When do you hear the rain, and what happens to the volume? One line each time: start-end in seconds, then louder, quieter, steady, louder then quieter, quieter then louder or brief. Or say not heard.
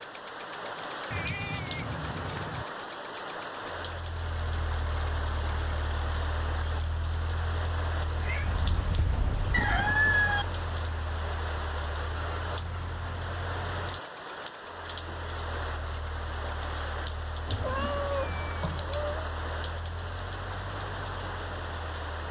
0.0-22.2 steady.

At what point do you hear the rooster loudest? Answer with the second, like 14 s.
10 s.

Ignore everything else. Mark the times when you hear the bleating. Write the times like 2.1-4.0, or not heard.
not heard.